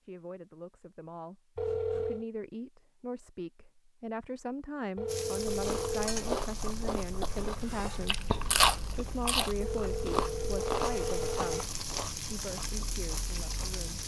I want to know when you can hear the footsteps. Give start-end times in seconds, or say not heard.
not heard.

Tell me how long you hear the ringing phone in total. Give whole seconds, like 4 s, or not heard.
4 s.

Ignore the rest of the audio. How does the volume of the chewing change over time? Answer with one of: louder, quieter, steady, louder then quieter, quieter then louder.
louder then quieter.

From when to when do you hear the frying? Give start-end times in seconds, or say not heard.
5.0-14.0.